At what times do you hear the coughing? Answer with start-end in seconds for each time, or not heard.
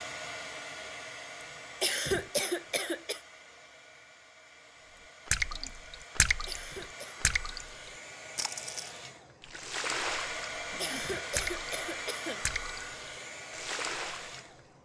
1.8-3.2, 6.5-7.2, 10.8-12.4.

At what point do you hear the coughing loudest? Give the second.
2 s.